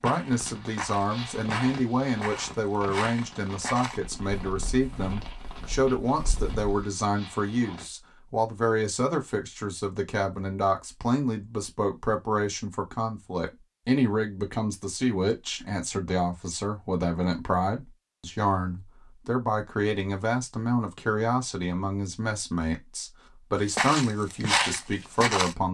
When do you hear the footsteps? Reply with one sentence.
You can hear the footsteps from 0.0 to 6.8 s and from 23.8 to 25.6 s.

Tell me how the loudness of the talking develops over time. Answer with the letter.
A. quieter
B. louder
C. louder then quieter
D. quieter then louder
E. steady
E.